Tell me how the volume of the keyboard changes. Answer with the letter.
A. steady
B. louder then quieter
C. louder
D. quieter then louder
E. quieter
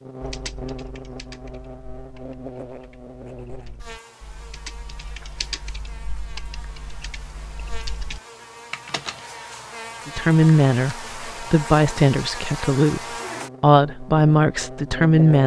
D.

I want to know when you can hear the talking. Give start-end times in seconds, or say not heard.
10.1-15.4.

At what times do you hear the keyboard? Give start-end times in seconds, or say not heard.
0.2-9.2.